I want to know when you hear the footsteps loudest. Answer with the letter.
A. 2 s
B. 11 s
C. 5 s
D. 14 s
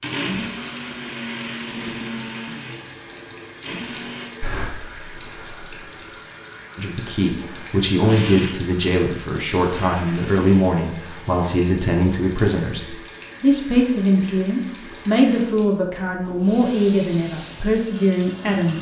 C.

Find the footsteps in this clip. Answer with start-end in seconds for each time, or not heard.
4.4-6.0.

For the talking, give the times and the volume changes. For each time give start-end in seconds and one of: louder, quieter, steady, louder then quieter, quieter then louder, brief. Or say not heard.
6.8-18.7 steady.